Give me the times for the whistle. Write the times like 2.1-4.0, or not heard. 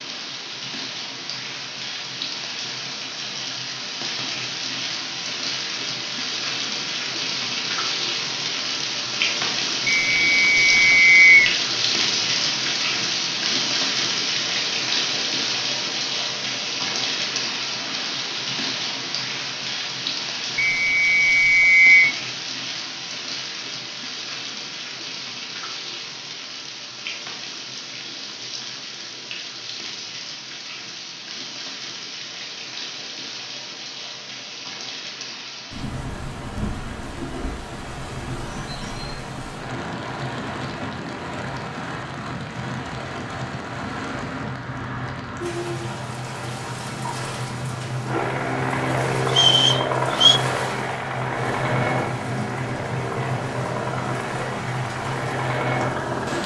9.8-11.6, 20.6-22.1, 49.2-50.4.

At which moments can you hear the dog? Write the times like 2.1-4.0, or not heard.
not heard.